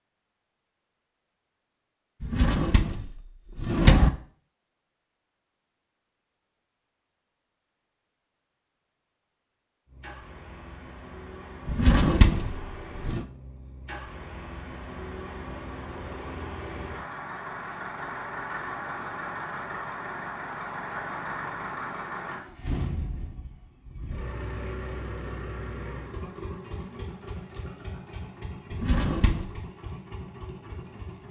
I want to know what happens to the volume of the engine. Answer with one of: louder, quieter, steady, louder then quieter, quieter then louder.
louder then quieter.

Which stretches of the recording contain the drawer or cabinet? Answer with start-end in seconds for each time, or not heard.
2.2-4.1, 11.7-13.2, 28.7-29.6.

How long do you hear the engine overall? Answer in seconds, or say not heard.
21 s.